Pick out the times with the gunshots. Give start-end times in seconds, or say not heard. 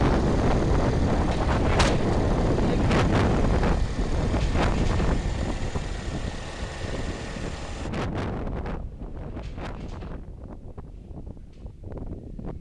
1.3-2.0.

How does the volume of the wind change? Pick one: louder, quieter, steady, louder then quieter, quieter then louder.
quieter.